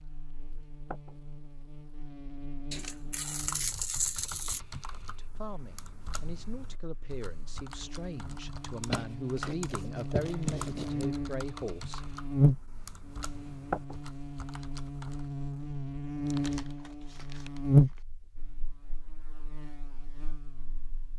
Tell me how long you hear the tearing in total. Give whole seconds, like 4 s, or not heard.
6 s.